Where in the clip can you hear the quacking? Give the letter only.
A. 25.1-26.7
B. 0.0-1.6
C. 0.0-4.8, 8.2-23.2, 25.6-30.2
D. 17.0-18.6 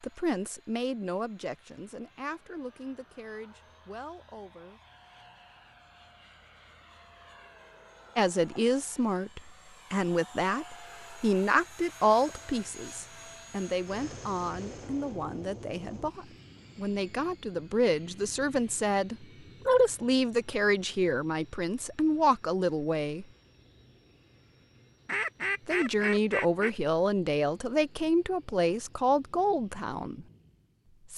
A.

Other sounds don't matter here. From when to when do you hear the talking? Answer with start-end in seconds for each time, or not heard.
0.0-4.8, 8.2-23.2, 25.6-30.2.